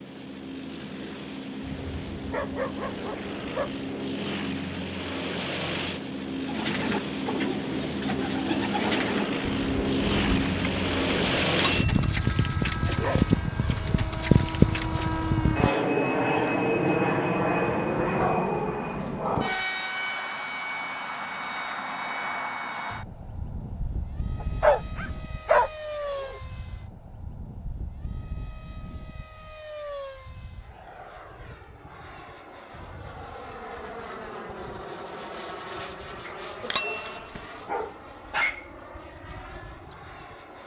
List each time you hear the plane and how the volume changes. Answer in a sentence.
The plane can be heard from 0.0 to 40.6 s, getting louder then quieter.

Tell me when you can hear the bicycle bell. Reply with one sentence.
You can hear the bicycle bell from 11.5 to 12.1 s and from 36.6 to 37.5 s.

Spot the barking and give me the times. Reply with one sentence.
The barking can be heard from 1.6 to 3.9 s, from 12.9 to 14.1 s, from 18.1 to 19.6 s, from 24.4 to 26.4 s and from 36.2 to 38.7 s.